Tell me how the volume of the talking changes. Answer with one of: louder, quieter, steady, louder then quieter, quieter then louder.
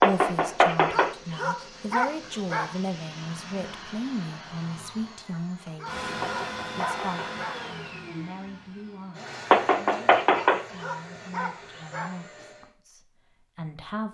quieter.